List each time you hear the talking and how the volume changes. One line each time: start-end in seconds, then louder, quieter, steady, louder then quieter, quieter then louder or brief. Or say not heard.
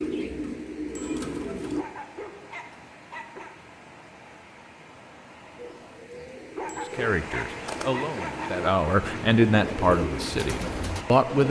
7.0-11.4 louder then quieter.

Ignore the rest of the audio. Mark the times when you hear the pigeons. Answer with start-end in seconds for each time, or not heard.
0.0-1.9, 5.5-11.4.